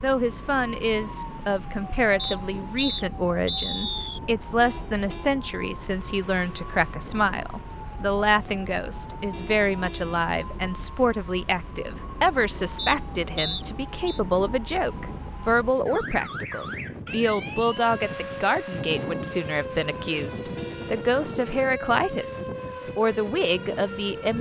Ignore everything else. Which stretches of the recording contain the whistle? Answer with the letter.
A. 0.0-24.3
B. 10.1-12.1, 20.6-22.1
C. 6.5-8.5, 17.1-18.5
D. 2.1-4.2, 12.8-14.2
D.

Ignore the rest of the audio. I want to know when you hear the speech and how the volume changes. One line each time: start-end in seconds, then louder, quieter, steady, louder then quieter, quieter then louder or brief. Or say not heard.
0.0-24.3 steady.